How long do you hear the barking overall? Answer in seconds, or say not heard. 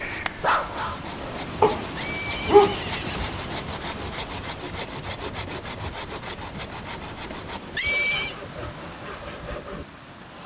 3 s.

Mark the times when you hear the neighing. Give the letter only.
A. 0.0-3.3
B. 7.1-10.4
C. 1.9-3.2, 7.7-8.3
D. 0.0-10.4
C.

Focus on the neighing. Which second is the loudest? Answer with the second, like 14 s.
8 s.